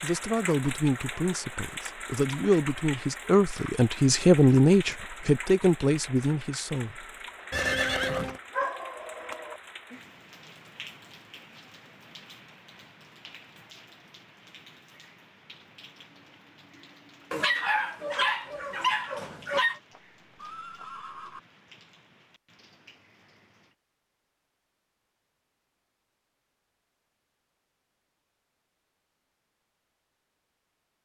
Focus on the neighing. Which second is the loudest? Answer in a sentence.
The volume of the neighing peaks at 8 seconds.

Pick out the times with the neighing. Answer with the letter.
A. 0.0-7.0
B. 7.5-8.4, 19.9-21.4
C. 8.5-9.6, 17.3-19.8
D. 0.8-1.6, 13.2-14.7
B.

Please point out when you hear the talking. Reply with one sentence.
You can hear the talking from 0.0 to 7.0 s.